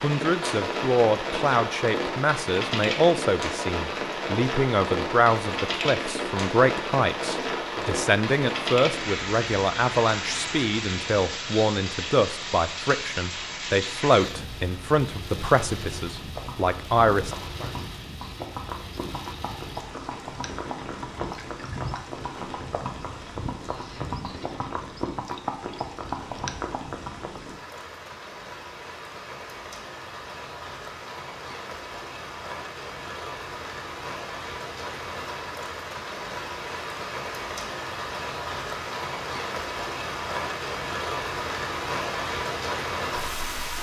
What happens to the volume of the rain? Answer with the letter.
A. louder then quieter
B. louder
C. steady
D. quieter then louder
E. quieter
D.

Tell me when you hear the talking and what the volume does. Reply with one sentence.
You can hear the talking from 0.0 to 17.7 s, at a steady volume.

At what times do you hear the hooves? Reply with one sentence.
You can hear the hooves from 16.1 to 27.4 s.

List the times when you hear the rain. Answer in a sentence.
The rain can be heard from 0.0 to 43.7 s.